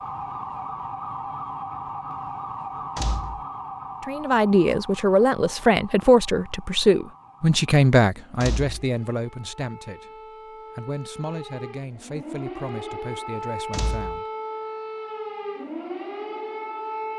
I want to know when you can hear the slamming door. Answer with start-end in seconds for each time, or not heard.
3.0-3.5, 8.4-8.9, 13.7-14.2.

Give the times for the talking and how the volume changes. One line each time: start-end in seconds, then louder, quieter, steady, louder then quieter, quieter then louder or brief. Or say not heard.
4.0-14.2 quieter.